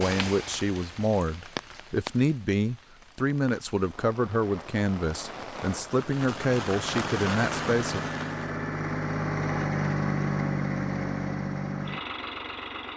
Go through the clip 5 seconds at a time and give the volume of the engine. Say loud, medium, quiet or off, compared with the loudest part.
off, loud, loud.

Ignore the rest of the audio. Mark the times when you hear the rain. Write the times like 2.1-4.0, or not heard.
0.0-8.6.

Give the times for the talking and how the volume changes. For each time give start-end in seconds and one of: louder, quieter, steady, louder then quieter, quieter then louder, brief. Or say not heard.
0.0-8.1 steady.